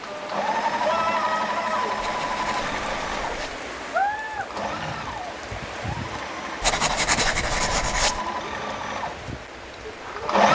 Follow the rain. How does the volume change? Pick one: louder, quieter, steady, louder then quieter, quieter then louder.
quieter.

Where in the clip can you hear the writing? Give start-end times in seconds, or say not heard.
1.9-3.6, 6.6-8.2.